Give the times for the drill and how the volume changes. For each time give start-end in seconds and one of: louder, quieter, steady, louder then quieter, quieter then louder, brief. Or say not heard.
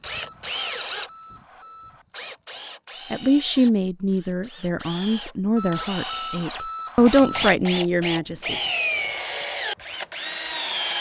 0.0-10.9 quieter then louder.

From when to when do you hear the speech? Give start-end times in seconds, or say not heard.
3.1-8.6.